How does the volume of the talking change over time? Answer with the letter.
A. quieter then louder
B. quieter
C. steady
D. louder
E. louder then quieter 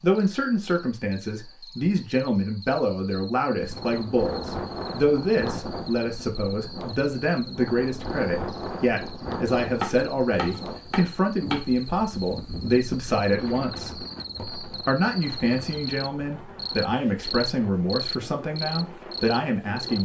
C.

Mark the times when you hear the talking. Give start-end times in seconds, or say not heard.
0.0-19.9.